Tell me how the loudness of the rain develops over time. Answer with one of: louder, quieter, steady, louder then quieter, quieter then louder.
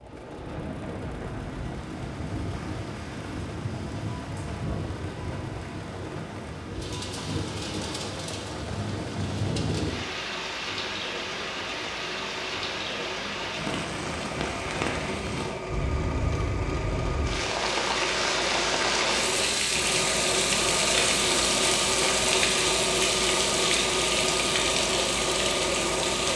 louder.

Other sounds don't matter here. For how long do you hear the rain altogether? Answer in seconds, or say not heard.
26 s.